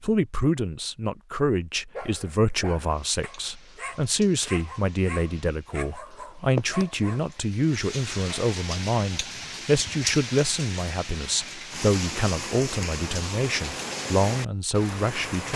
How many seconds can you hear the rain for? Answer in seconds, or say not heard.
13 s.